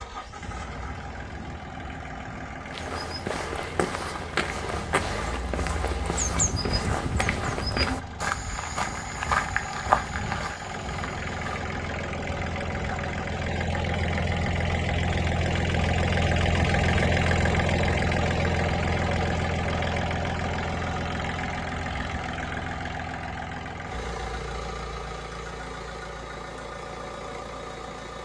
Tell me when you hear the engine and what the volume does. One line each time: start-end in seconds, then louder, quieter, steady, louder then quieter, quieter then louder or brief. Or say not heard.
0.0-28.1 louder then quieter.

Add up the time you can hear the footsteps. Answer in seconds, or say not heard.
9 s.